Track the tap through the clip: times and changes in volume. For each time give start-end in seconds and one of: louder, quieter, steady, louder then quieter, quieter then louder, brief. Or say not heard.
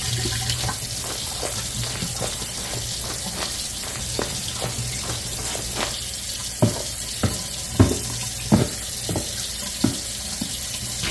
0.0-11.0 steady.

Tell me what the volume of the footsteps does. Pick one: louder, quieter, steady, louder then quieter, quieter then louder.
louder.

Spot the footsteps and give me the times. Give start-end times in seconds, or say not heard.
0.5-6.0, 6.6-10.5.